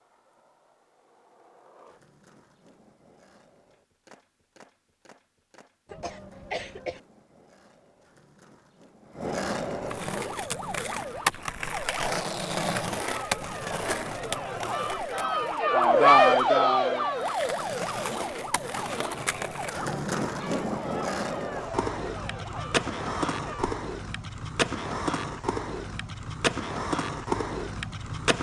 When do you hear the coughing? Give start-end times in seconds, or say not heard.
5.8-7.0.